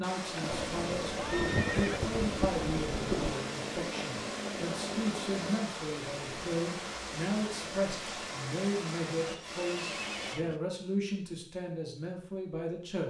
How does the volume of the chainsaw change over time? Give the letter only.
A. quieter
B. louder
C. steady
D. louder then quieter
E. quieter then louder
C.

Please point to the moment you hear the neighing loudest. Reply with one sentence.
The loudest moment of the neighing is at 2 seconds.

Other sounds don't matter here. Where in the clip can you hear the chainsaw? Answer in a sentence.
The chainsaw can be heard from 0.2 to 5.6 s.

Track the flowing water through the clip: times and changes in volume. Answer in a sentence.
The flowing water can be heard from 0.0 to 10.3 s, at a steady volume.